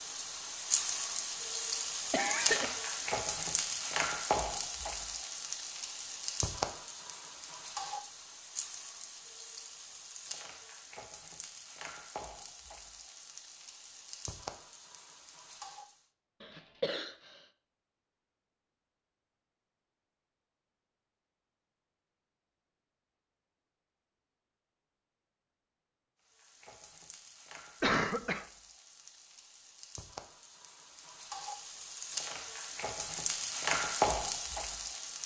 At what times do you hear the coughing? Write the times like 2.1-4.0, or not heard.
2.1-2.8, 16.4-17.4, 27.8-28.4.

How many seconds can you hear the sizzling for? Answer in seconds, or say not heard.
25 s.